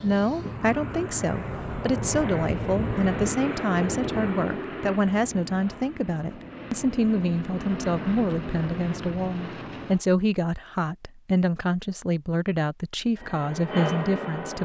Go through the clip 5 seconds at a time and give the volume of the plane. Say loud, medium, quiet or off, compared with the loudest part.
loud, medium, loud.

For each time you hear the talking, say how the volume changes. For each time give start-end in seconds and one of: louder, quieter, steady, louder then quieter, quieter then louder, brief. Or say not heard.
0.0-14.6 steady.